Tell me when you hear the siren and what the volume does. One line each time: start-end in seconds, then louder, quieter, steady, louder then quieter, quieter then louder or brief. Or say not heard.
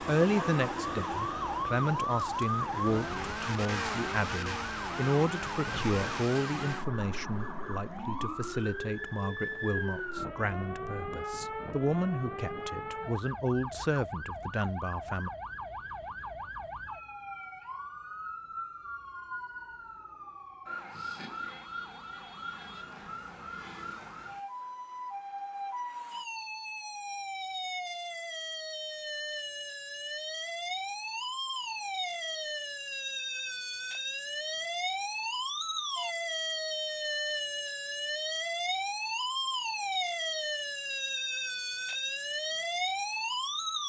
0.0-43.8 quieter then louder.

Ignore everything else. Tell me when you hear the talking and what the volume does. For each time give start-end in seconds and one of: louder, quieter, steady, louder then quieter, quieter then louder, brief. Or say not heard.
0.0-15.3 steady.